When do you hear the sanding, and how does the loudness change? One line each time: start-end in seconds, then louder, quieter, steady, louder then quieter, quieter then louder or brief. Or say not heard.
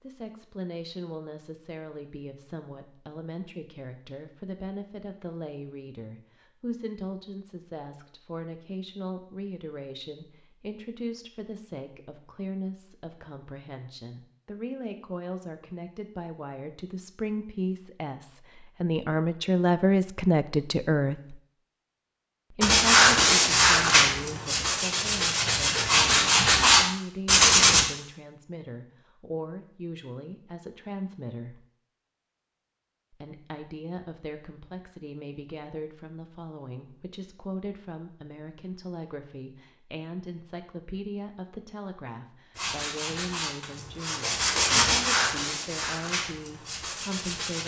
22.6-27.9 quieter then louder
42.5-47.6 louder then quieter.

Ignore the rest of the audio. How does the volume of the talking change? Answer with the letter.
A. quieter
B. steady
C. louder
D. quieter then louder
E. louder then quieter
E.